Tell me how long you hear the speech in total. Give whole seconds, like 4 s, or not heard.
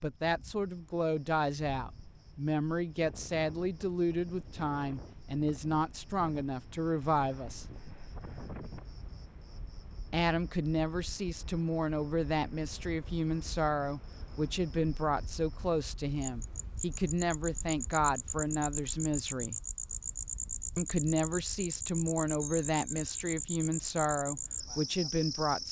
22 s.